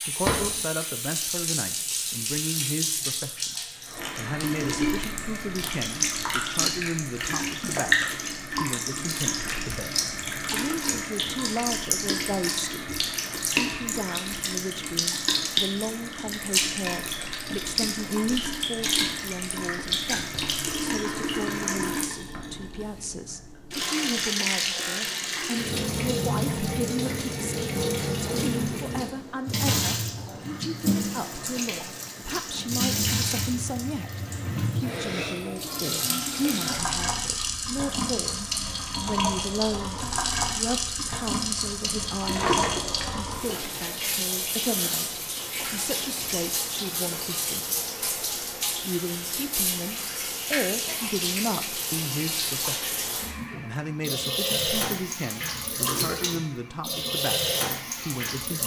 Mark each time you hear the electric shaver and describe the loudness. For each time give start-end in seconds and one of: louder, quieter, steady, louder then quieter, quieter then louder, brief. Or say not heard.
not heard.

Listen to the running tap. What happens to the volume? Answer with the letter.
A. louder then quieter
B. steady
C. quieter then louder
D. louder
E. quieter
B.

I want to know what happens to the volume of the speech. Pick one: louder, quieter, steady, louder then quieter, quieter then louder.
steady.